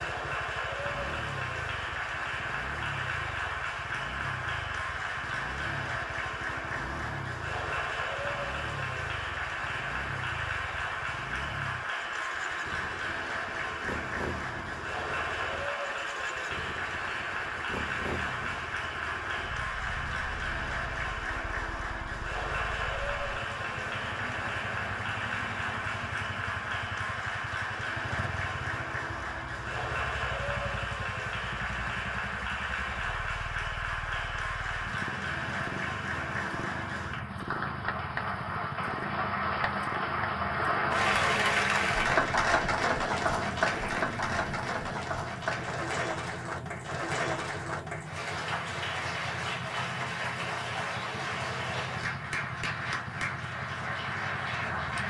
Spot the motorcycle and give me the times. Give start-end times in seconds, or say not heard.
0.0-55.0.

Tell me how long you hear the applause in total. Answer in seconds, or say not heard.
55 s.